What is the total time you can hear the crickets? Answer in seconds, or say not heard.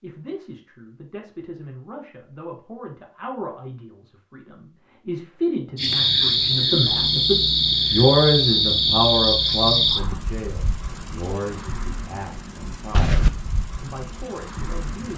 9 s.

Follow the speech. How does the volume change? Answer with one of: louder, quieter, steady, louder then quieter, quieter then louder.
louder then quieter.